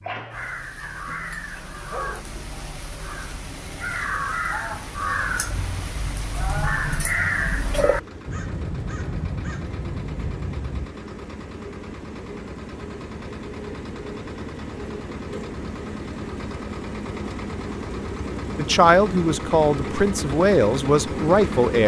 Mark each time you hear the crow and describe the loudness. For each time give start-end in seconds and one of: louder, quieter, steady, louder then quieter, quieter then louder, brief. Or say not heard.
0.3-10.9 louder then quieter.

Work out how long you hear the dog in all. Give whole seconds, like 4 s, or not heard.
2 s.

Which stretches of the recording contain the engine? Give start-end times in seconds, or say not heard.
0.0-21.8.